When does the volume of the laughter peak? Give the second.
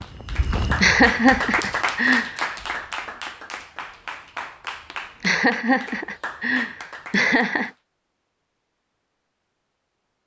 1 s.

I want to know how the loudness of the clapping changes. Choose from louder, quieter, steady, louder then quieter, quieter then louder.
quieter.